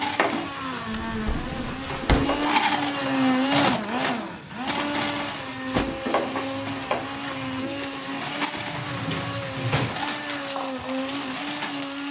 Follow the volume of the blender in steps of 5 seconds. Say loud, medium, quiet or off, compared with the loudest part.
loud, medium, medium.